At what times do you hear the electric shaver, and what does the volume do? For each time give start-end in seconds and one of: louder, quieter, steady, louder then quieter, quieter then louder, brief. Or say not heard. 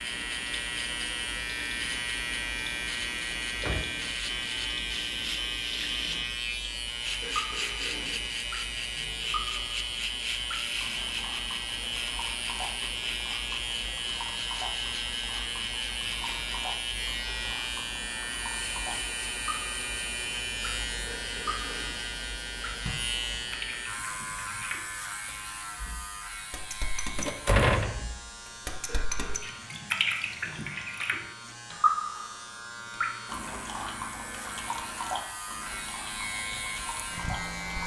0.0-37.8 quieter.